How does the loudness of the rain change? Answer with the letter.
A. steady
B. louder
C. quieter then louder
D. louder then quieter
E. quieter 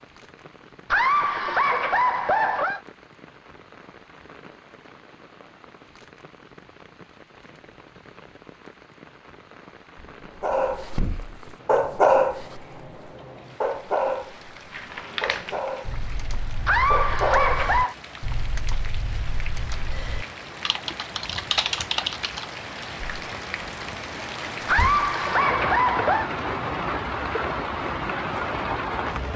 B.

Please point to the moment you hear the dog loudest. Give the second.
12 s.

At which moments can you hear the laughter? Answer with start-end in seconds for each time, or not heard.
0.9-2.8, 16.6-17.9, 24.6-26.3.